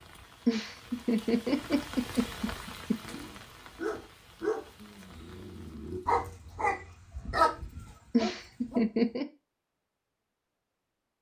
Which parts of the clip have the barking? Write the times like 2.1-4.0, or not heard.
3.0-8.8.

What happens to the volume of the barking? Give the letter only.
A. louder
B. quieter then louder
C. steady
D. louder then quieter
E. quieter
D.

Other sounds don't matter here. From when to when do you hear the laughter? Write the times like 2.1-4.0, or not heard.
0.5-3.1, 8.1-9.2.